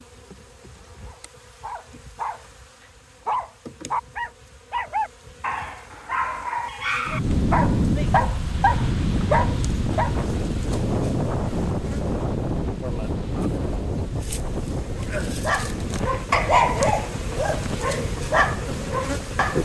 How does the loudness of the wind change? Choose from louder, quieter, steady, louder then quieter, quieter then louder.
quieter.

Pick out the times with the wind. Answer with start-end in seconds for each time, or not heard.
7.0-19.6.